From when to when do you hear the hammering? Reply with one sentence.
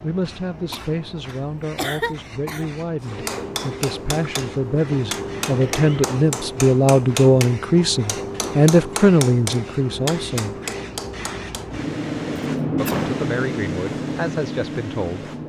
The hammering can be heard from 3.0 to 11.8 s.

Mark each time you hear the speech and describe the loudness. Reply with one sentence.
The speech can be heard from 0.0 to 10.6 s, getting louder; and briefly from 12.8 to 15.3 s.